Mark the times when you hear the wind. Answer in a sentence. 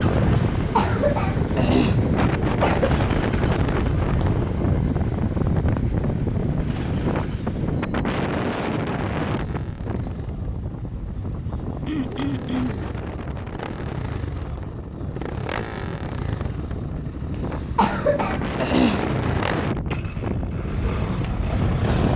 The wind can be heard from 0.0 to 22.1 s.